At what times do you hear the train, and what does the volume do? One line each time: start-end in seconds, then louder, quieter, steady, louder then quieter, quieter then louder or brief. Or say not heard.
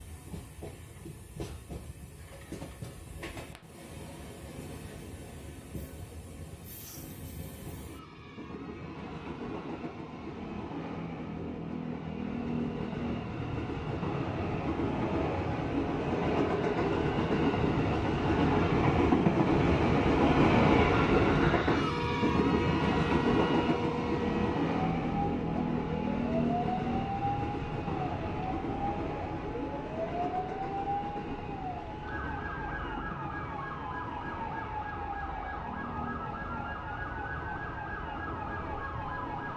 0.0-39.5 louder then quieter.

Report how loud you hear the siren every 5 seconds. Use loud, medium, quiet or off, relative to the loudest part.
off, off, off, off, loud, loud, loud, loud.